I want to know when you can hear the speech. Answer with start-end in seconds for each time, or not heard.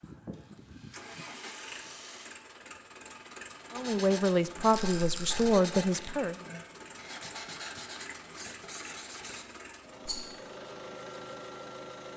3.7-6.3.